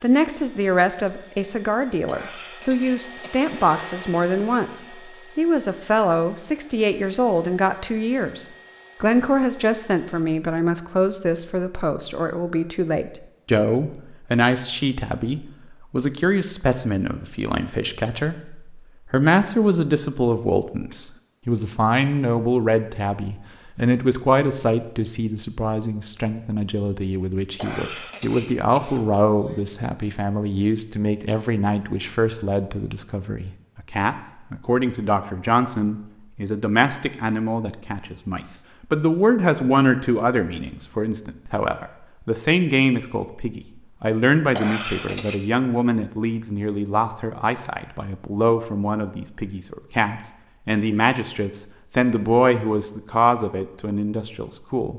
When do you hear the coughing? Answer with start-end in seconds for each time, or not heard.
2.0-3.5, 27.6-29.6, 44.5-45.4.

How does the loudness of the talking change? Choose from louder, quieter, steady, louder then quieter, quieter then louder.
steady.